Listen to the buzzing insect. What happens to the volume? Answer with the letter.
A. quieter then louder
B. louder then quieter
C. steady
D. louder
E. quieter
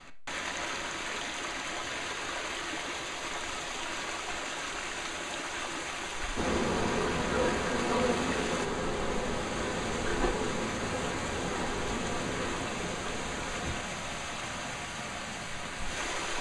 E.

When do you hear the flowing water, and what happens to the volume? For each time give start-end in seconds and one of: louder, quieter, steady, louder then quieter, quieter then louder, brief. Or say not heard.
0.0-16.3 steady.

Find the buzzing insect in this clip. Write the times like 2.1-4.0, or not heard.
6.3-13.8.